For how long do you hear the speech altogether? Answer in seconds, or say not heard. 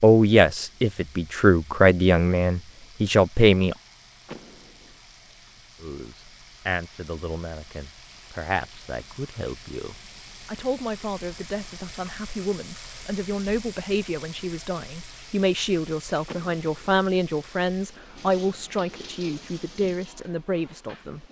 19 s.